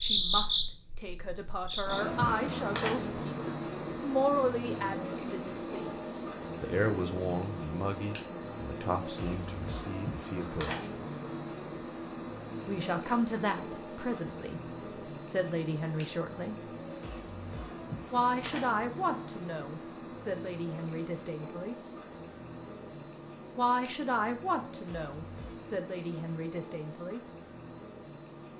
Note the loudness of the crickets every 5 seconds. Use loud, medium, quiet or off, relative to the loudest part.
loud, loud, loud, medium, medium, medium.